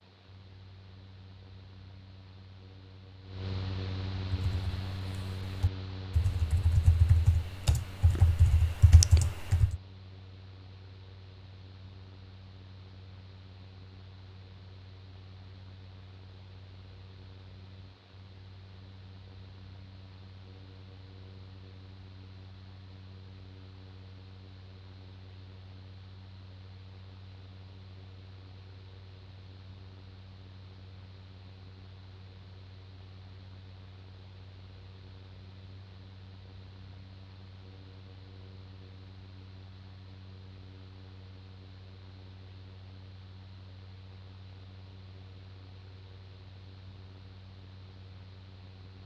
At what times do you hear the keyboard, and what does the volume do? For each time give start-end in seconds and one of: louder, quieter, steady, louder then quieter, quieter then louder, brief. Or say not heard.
4.2-9.8 louder.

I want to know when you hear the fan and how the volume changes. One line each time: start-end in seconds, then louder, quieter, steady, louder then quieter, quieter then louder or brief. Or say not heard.
0.0-49.0 quieter.